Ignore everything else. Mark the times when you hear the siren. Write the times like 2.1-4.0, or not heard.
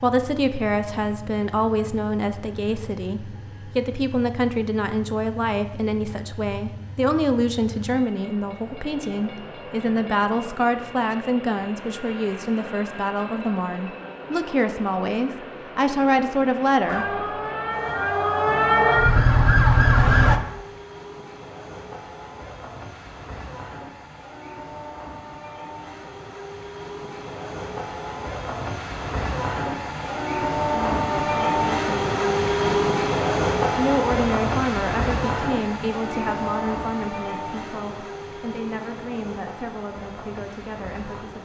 16.9-20.4.